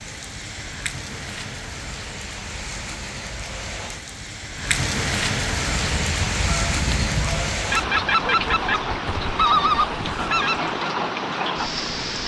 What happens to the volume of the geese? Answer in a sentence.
The loudness of the geese goes up.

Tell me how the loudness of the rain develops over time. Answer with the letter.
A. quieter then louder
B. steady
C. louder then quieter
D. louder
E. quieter
D.